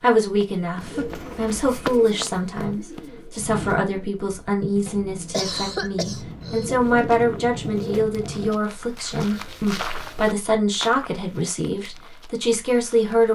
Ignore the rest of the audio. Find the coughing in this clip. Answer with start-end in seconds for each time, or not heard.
5.3-6.7.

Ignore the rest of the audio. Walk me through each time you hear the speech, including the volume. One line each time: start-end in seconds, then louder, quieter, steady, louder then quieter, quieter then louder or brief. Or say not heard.
0.0-13.2 steady.